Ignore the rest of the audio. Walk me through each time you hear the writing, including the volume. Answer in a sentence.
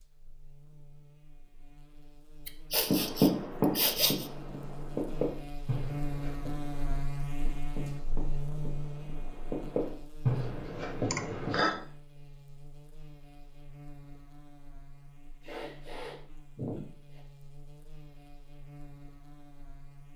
The writing can be heard from 2.9 to 11.8 s, getting quieter then louder.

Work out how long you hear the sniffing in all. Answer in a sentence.
You can hear the sniffing for 4 seconds altogether.